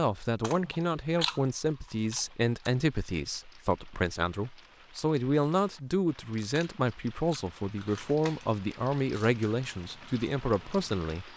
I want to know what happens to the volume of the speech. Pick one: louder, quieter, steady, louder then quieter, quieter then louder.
steady.